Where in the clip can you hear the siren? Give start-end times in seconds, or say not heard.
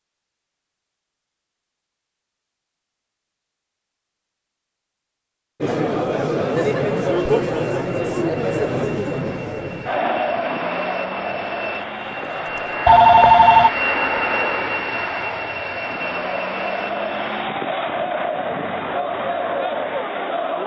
not heard.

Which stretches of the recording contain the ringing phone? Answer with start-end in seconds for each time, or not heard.
12.8-13.7.